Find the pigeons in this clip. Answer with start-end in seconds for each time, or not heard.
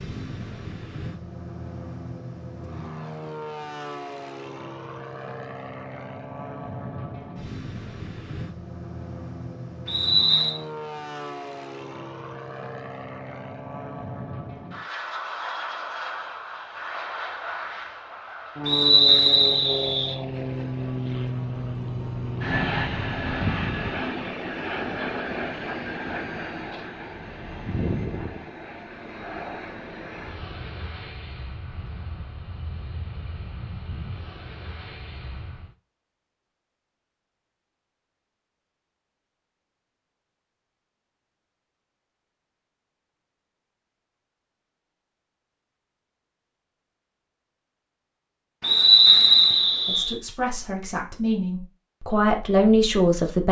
not heard.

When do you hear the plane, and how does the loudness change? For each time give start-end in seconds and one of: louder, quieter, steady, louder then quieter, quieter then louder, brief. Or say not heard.
0.0-35.8 louder then quieter.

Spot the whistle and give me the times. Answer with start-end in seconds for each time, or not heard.
9.8-10.6, 18.6-20.1, 48.6-50.1.